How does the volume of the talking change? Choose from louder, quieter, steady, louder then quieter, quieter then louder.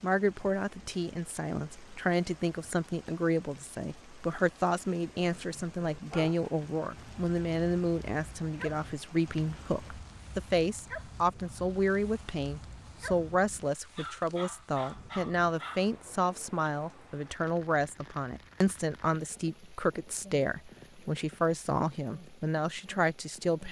steady.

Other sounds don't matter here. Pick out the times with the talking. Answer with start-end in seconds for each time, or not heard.
0.0-23.6.